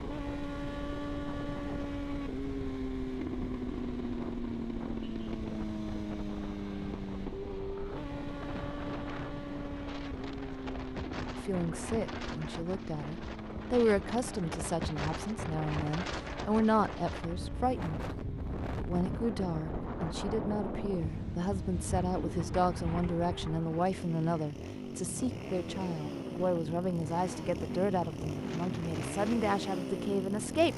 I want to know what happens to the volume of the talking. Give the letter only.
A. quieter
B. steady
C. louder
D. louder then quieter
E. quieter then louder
B.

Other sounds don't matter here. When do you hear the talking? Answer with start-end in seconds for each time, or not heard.
11.4-17.9, 18.7-30.7.